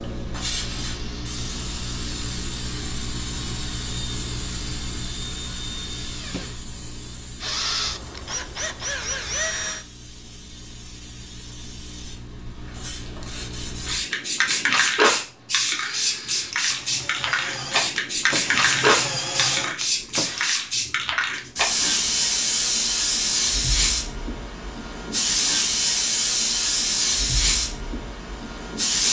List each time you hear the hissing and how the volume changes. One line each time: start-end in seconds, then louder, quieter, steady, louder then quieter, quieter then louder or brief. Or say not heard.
0.0-29.0 quieter then louder.